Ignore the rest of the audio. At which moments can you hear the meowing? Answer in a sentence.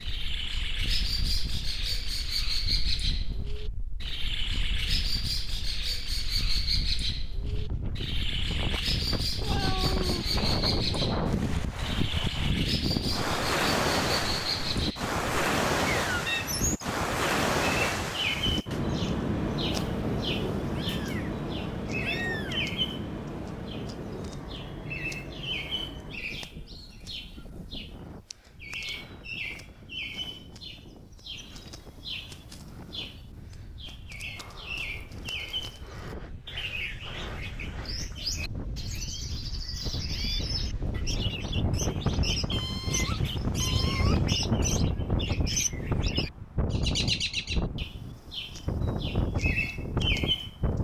You can hear the meowing from 9.4 to 10.4 s, from 20.6 to 22.6 s and from 42.5 to 44.4 s.